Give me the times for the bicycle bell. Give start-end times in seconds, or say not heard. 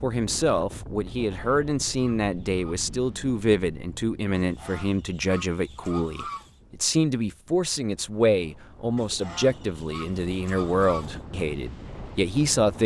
not heard.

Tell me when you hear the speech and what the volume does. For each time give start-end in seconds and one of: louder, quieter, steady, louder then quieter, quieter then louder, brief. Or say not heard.
0.0-12.8 steady.